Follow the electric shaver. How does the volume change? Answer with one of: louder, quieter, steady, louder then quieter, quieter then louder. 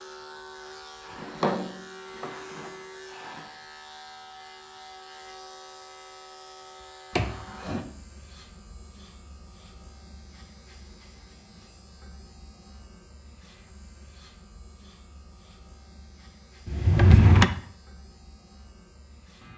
quieter.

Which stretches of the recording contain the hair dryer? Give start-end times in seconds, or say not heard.
not heard.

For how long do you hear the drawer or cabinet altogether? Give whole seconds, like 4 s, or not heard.
4 s.